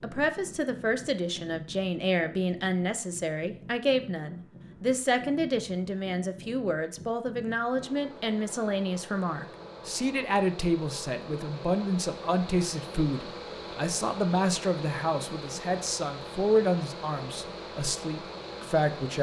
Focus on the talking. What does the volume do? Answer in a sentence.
The loudness of the talking stays about the same.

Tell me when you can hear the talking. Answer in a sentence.
You can hear the talking from 0.0 to 19.1 s.